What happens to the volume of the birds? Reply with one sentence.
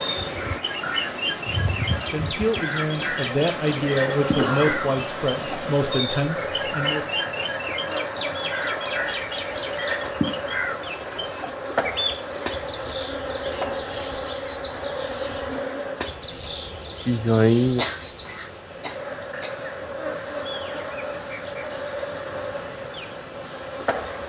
The loudness of the birds stays about the same.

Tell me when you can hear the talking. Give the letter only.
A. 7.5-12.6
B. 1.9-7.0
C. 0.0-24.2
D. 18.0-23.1
B.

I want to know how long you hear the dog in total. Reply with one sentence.
You can't hear the dog here.